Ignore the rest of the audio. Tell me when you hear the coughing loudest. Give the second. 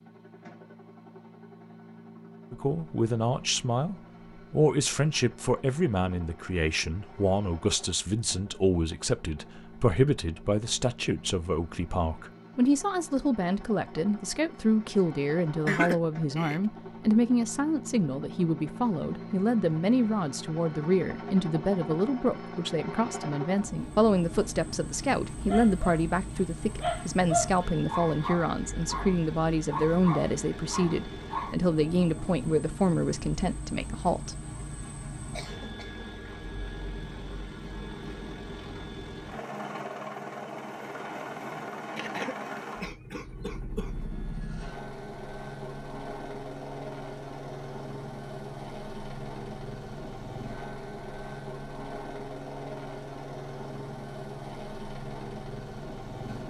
16 s.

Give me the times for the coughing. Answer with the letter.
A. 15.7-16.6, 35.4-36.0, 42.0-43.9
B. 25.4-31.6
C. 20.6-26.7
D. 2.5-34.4
A.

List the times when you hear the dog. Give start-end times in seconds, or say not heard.
25.4-31.6.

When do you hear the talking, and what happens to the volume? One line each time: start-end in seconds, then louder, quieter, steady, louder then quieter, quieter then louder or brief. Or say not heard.
2.5-34.4 steady.